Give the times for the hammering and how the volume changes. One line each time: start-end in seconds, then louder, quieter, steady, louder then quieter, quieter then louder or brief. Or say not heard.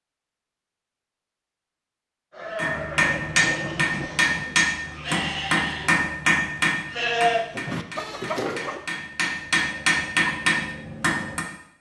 2.5-11.4 quieter then louder.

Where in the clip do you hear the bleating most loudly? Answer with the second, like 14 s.
7 s.